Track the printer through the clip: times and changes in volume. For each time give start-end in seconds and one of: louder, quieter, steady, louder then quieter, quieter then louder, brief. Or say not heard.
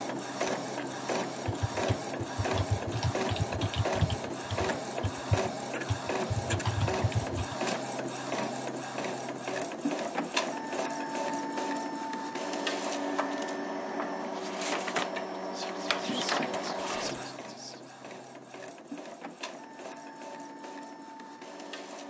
0.0-22.0 quieter.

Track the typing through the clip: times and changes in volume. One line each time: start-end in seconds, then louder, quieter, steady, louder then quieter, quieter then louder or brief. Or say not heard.
1.4-7.5 steady.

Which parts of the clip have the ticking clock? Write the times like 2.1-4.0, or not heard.
not heard.